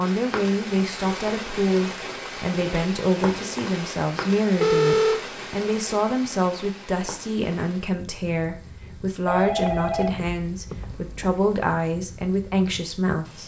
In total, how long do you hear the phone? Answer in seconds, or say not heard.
3 s.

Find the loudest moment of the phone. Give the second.
5 s.